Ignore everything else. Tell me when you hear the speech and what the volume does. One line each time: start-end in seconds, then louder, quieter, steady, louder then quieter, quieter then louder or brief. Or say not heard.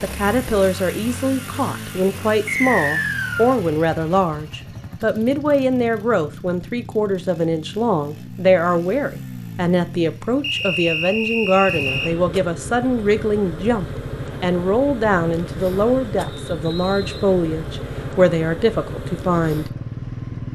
0.0-19.8 steady.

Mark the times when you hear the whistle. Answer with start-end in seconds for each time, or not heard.
2.5-3.6, 10.4-12.1, 16.2-17.9.